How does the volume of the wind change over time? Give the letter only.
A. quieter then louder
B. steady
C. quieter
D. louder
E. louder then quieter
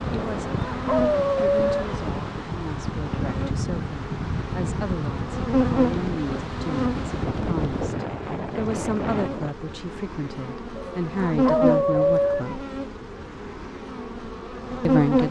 B.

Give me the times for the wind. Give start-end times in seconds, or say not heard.
0.0-9.6.